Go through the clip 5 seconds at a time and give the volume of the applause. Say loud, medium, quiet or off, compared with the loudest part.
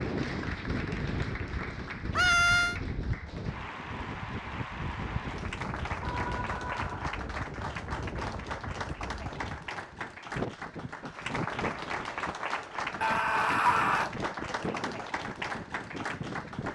medium, loud, loud, loud.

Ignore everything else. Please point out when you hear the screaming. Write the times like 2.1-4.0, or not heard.
2.1-2.8, 6.0-7.2, 13.0-14.1.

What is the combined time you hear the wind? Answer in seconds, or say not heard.
17 s.